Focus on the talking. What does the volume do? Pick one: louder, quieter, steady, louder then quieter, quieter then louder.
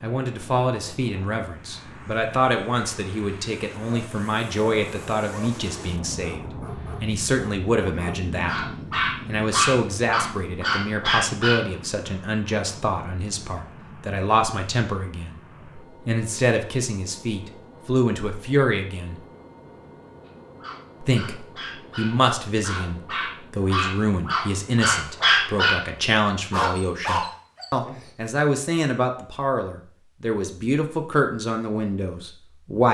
steady.